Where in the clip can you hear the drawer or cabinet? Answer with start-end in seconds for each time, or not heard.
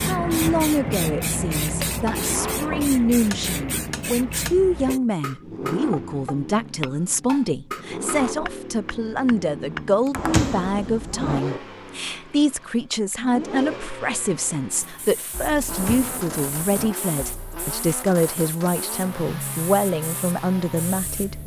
0.2-0.7, 10.2-11.4, 15.7-16.9.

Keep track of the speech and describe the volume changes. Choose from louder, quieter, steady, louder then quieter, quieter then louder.
steady.